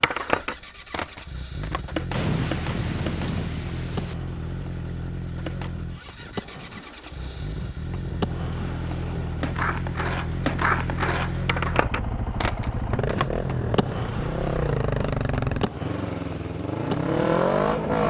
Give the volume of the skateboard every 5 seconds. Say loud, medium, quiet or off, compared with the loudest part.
loud, medium, loud, medium.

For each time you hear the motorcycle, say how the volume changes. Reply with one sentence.
The motorcycle can be heard from 0.0 to 18.0 s, getting louder.